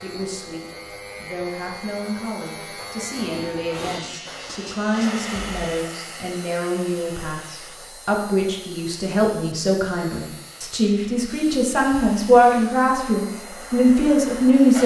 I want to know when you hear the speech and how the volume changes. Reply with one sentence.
You can hear the speech from 0.0 to 14.8 s, getting louder.